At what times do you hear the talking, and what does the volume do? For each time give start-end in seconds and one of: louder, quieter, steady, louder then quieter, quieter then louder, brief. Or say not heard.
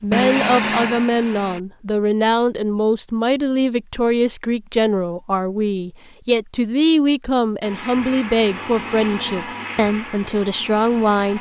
0.0-11.3 steady.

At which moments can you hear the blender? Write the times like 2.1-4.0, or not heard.
0.0-1.6, 7.6-11.3.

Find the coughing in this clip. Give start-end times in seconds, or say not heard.
not heard.